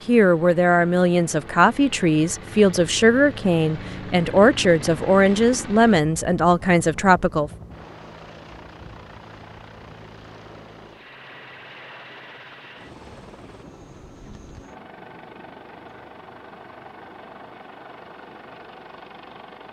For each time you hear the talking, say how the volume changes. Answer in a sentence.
You can hear the talking from 0.1 to 7.5 s, at a steady volume.